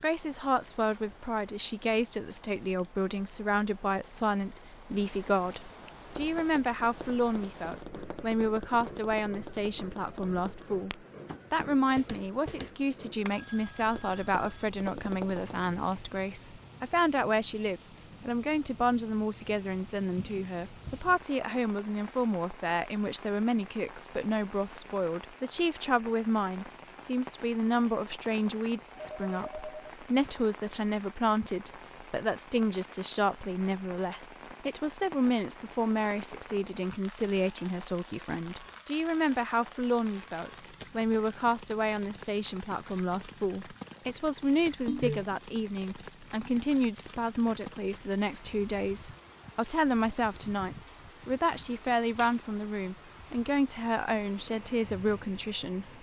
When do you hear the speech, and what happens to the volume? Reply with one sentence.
The speech can be heard from 0.0 to 55.9 s, at a steady volume.